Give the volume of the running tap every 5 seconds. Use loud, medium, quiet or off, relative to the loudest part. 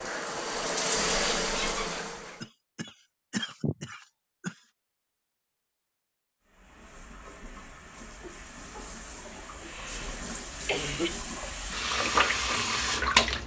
loud, quiet, loud.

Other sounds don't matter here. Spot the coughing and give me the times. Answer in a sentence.
The coughing can be heard from 2.4 to 4.5 s and from 9.3 to 11.2 s.